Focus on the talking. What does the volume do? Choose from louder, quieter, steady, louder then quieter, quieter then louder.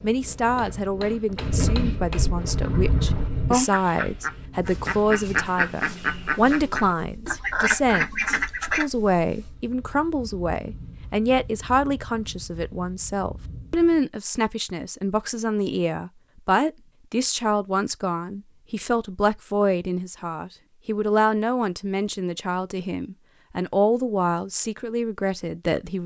steady.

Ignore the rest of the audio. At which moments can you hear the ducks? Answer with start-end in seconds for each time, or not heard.
2.4-8.8.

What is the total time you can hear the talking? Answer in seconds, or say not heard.
26 s.